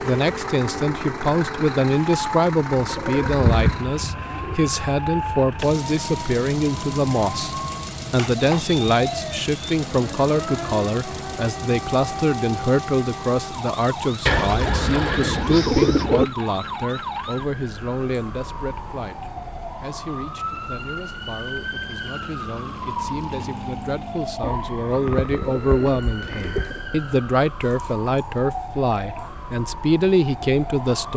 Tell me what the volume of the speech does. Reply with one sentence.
The loudness of the speech goes down, then up.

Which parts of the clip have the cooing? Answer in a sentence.
You can hear the cooing from 2.8 to 4.5 s, from 14.2 to 16.2 s and from 24.4 to 26.8 s.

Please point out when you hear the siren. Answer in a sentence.
The siren can be heard from 0.0 to 31.1 s.